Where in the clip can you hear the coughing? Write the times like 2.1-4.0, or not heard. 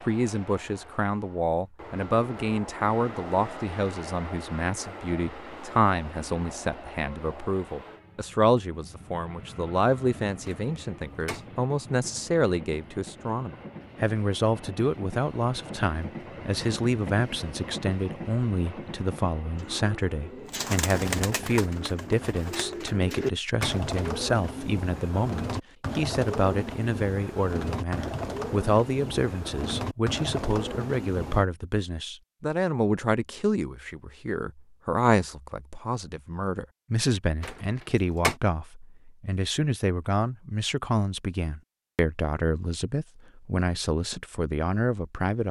not heard.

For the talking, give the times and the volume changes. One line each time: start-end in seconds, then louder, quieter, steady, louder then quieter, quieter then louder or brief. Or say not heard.
0.0-45.4 steady.